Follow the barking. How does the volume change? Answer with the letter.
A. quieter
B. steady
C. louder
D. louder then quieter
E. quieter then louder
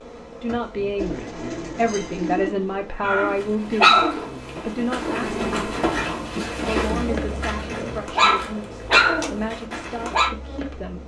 E.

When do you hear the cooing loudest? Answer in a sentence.
The volume of the cooing peaks at 2 seconds.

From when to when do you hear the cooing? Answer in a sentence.
The cooing can be heard from 0.9 to 2.5 s.